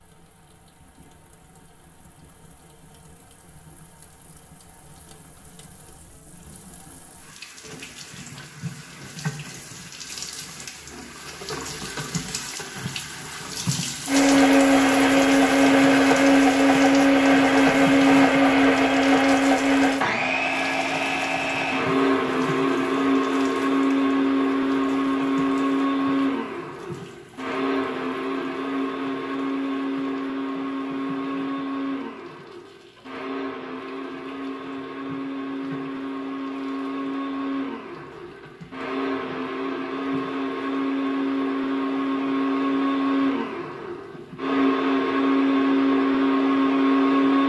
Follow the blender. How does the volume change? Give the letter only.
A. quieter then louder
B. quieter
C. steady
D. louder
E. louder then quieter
A.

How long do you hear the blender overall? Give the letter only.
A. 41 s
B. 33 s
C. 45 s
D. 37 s
B.